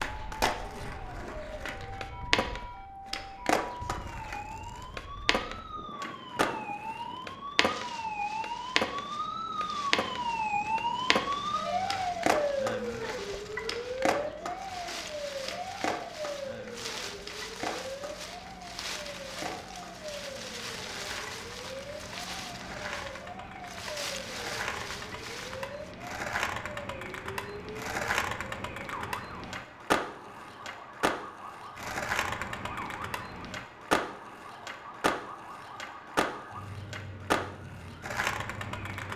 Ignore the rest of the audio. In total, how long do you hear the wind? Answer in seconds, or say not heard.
26 s.